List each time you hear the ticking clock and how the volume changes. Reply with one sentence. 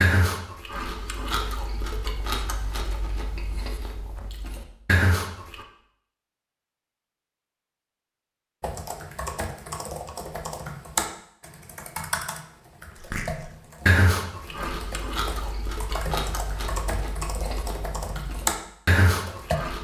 You can't hear the ticking clock here.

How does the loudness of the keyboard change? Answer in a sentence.
The loudness of the keyboard goes down, then up.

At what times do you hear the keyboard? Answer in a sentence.
You can hear the keyboard from 8.6 to 19.6 s.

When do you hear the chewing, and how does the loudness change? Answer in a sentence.
You can hear the chewing from 0.0 to 5.7 s, getting quieter then louder; and from 13.0 to 19.7 s, getting quieter then louder.